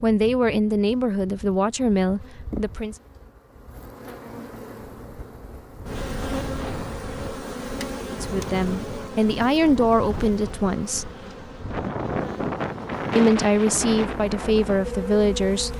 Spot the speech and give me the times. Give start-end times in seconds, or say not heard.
0.0-3.0, 8.1-11.1, 13.2-15.7.